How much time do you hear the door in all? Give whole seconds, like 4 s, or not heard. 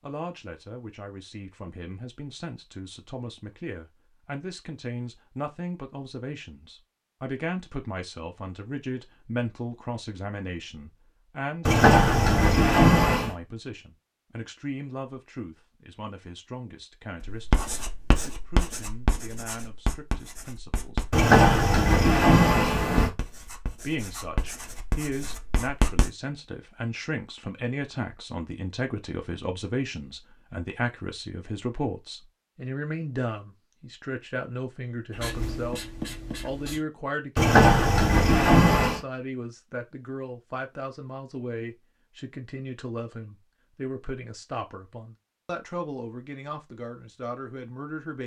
5 s.